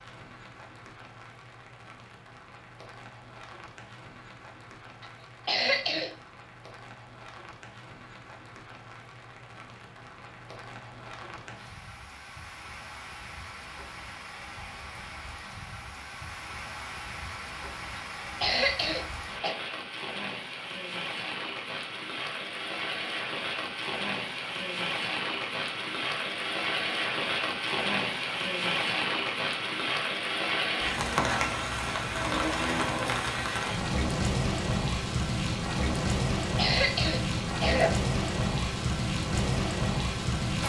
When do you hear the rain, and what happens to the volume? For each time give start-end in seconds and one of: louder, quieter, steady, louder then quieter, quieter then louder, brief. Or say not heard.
0.0-40.6 louder.